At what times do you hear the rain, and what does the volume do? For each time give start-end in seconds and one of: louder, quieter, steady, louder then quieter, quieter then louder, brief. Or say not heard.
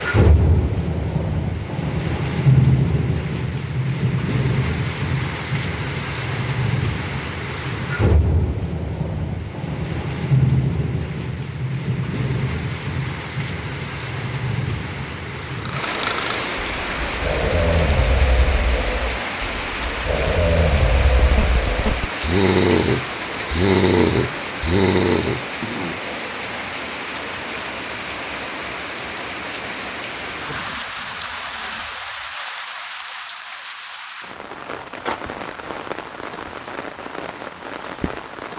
0.0-38.5 quieter.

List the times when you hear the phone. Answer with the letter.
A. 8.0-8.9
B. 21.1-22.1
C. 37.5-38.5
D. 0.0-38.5
B.